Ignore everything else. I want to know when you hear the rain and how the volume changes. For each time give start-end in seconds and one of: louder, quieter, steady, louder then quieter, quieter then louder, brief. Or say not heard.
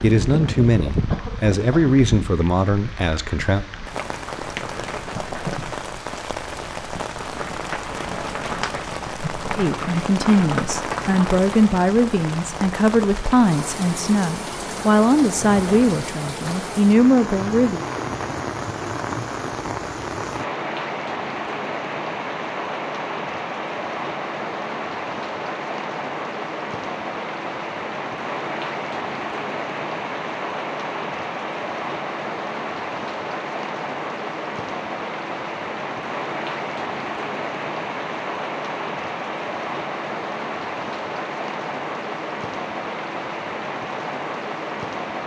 0.0-45.2 steady.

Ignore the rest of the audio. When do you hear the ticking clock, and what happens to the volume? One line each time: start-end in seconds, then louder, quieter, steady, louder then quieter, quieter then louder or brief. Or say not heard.
not heard.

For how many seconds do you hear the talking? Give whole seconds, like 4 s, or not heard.
12 s.